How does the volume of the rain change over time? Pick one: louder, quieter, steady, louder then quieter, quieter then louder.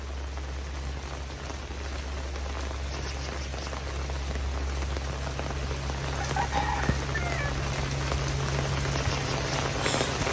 louder.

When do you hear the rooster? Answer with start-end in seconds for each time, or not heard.
6.2-7.5.